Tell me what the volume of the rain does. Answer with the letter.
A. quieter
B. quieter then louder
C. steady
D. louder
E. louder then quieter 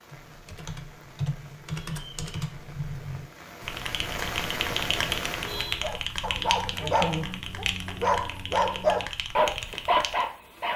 D.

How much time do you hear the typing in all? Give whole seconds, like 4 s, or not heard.
10 s.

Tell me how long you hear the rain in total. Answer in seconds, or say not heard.
6 s.